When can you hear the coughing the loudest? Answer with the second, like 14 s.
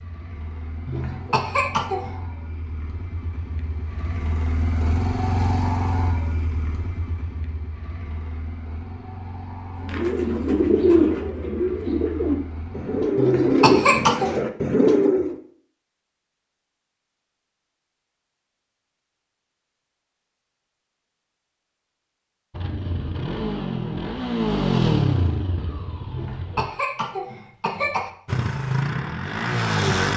14 s.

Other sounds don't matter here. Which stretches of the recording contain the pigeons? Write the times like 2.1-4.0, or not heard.
9.8-15.3.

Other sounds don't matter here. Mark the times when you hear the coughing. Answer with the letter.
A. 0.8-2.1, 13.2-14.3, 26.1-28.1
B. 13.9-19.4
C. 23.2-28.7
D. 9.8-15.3
A.